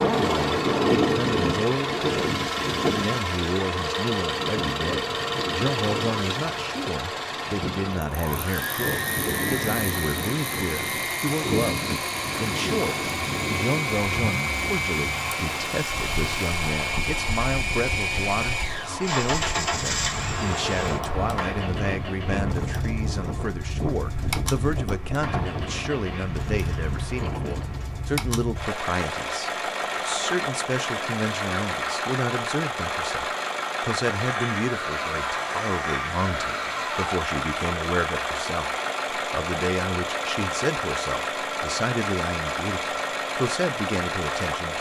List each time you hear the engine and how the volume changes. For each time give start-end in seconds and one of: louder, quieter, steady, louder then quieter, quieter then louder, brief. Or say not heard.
0.0-44.7 steady.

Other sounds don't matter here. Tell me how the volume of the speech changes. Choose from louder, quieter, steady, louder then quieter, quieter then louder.
steady.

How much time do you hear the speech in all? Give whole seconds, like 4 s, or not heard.
45 s.